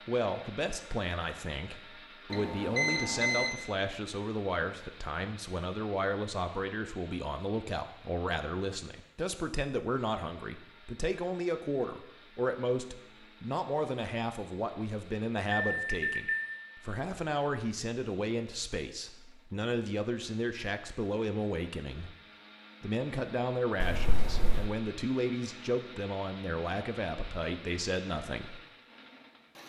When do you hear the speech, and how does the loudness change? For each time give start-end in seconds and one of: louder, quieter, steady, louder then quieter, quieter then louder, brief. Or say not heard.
0.1-22.1 steady
22.8-28.6 steady.